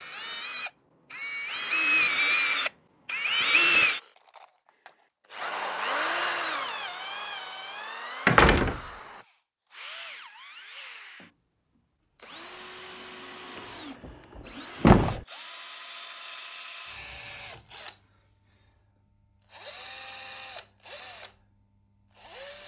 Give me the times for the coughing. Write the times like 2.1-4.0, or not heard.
not heard.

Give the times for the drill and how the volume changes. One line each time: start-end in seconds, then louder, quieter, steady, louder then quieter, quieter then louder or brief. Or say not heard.
0.0-22.6 quieter.